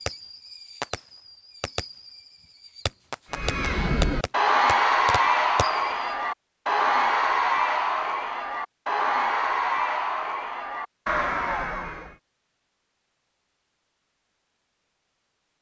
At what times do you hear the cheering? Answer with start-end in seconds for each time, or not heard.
3.3-12.2.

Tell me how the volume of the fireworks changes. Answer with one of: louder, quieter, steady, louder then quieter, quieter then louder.
louder then quieter.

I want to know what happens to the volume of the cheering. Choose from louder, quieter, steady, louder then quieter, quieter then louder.
quieter.